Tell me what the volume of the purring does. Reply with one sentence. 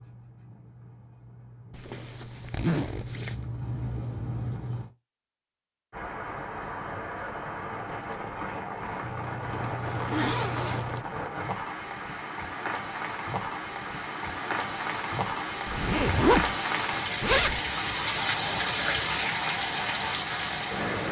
The volume of the purring goes up.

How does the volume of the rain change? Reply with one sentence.
The volume of the rain goes up.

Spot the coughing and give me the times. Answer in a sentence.
You can't hear the coughing here.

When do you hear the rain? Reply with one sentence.
The rain can be heard from 5.9 to 21.0 s.